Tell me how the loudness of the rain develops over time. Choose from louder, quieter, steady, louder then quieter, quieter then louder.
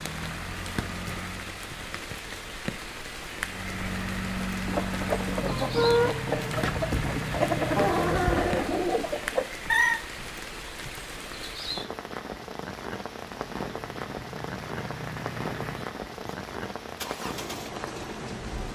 steady.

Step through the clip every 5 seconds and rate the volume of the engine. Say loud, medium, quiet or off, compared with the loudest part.
loud, loud, medium, medium.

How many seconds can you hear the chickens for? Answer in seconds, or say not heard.
5 s.